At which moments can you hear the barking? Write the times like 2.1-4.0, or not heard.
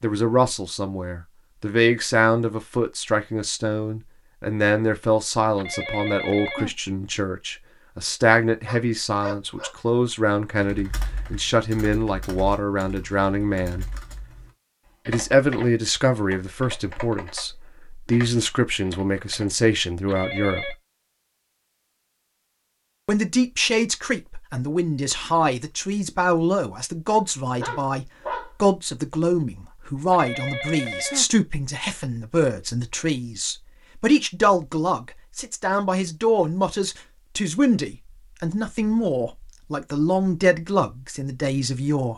8.6-9.8, 27.5-28.5.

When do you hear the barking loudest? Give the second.
28 s.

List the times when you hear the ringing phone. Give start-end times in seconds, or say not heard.
5.5-6.8, 20.1-20.8, 30.1-31.3.